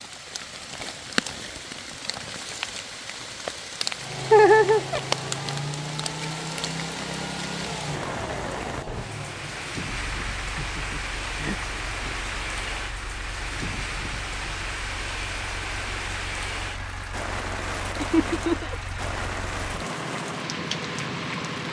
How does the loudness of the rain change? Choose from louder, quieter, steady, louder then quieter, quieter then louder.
steady.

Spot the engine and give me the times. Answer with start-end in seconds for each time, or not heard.
4.0-21.6.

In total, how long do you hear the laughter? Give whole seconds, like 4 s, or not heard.
3 s.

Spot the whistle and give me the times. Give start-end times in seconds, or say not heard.
not heard.